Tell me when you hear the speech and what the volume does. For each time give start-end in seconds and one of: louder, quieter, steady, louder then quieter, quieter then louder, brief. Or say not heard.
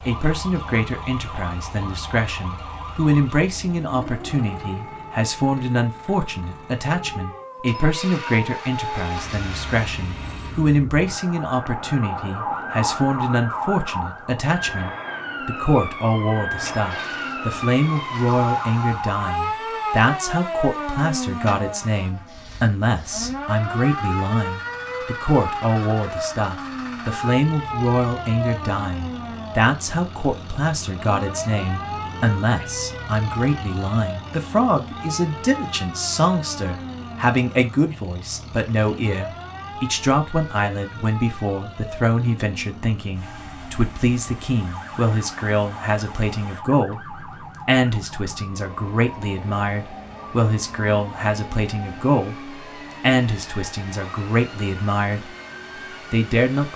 0.1-55.4 steady
56.1-56.7 brief.